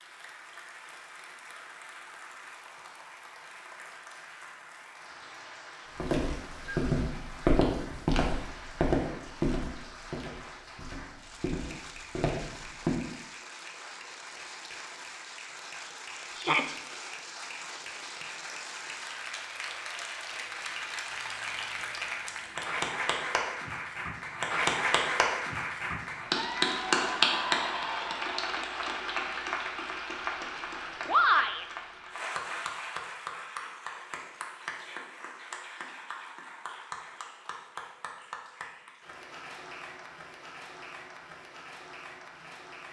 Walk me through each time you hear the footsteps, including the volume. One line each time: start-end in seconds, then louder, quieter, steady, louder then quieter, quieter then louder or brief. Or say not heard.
6.0-13.0 quieter then louder.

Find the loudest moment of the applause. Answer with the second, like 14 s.
27 s.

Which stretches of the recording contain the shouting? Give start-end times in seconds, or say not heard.
16.3-16.8, 31.1-31.6.